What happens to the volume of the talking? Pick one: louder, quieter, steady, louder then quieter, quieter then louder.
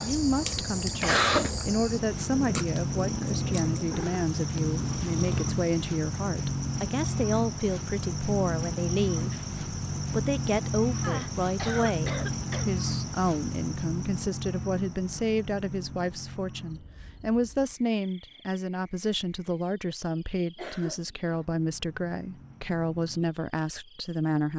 steady.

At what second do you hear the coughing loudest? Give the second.
1 s.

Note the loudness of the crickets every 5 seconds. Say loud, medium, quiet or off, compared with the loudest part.
loud, loud, loud, quiet, quiet.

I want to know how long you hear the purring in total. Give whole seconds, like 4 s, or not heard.
6 s.